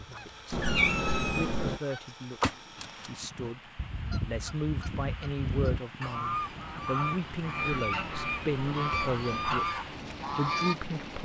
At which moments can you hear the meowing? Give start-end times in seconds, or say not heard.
0.5-1.8, 7.7-9.6.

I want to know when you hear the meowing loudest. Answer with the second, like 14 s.
1 s.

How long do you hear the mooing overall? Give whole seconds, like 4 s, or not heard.
not heard.